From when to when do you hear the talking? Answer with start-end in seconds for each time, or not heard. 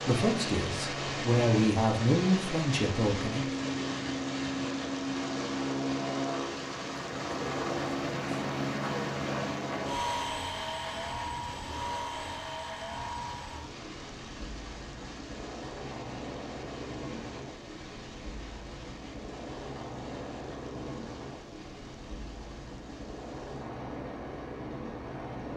0.0-3.6.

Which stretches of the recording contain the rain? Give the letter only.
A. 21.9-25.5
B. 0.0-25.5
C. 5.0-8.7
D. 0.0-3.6
B.